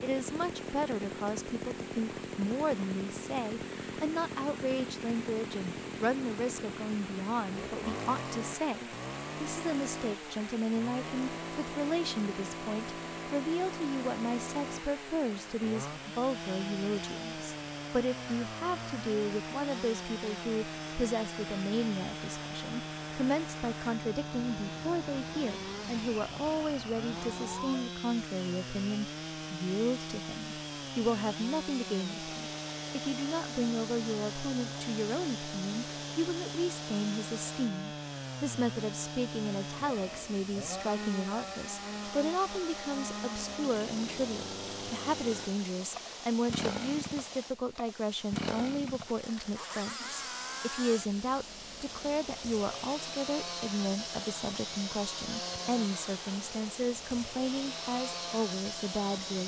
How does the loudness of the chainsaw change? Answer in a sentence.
The loudness of the chainsaw stays about the same.